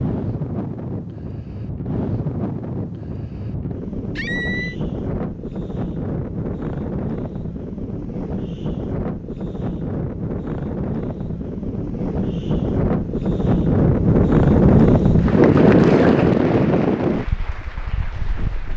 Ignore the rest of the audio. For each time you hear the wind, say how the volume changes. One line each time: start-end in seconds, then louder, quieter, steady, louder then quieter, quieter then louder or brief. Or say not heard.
0.0-18.7 louder.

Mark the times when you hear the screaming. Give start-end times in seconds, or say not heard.
4.2-4.8.